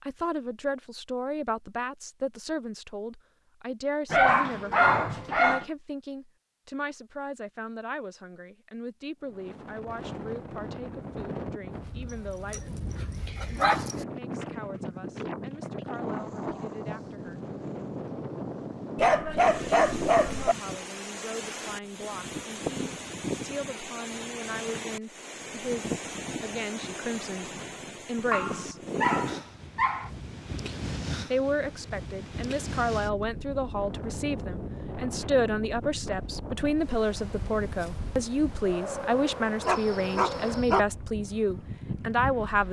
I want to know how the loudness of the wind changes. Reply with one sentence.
The volume of the wind stays about the same.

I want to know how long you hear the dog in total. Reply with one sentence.
You can hear the dog for 8 seconds altogether.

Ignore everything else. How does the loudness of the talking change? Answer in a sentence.
The volume of the talking goes down, then up.